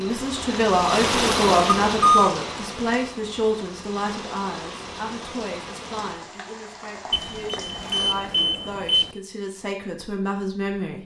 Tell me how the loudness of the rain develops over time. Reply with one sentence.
The volume of the rain goes down.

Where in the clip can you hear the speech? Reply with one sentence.
You can hear the speech from 0.0 to 10.9 s.